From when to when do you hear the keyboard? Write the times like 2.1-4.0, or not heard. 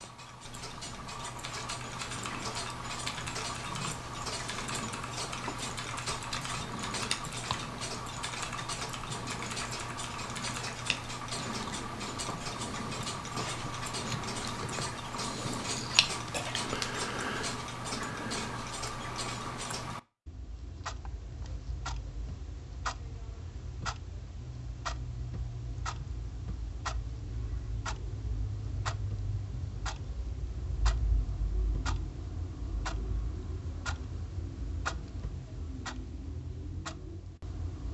1.4-11.1.